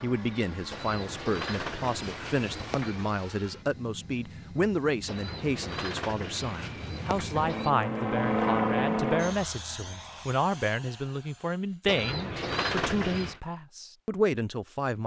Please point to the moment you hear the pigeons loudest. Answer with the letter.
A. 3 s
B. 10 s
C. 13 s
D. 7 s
C.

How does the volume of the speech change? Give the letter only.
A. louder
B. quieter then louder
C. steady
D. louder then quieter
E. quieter
C.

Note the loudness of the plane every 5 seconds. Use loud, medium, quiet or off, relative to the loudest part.
quiet, loud, quiet.